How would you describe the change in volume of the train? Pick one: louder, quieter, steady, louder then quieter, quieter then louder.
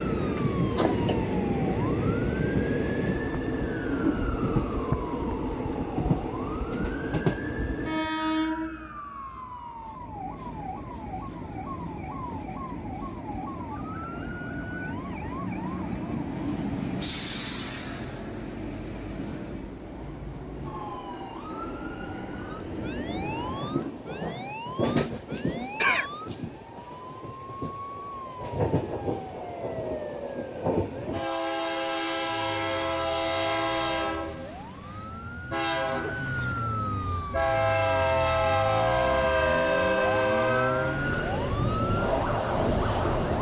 quieter then louder.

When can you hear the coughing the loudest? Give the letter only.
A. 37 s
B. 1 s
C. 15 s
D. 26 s
D.